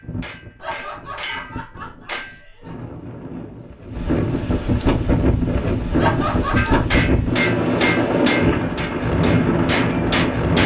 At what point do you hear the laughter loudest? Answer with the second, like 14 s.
6 s.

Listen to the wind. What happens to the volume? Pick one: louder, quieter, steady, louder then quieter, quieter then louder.
louder.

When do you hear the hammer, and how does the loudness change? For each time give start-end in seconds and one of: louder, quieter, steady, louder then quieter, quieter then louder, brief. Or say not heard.
0.0-2.4 brief
6.5-10.6 quieter then louder.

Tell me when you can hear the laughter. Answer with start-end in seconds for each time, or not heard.
0.6-2.9, 6.0-6.8.